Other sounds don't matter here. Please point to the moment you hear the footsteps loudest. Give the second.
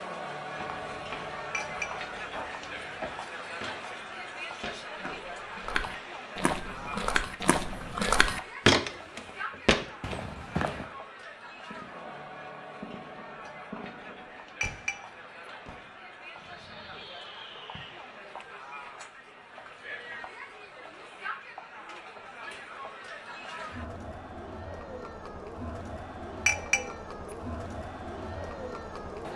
9 s.